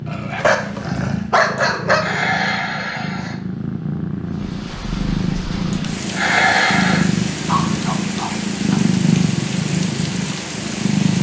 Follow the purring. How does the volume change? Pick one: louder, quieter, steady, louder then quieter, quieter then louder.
louder.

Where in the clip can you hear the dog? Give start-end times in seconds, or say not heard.
0.1-2.2, 7.5-8.8.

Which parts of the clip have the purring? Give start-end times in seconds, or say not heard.
0.0-11.1.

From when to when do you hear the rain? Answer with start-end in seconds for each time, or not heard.
4.2-11.1.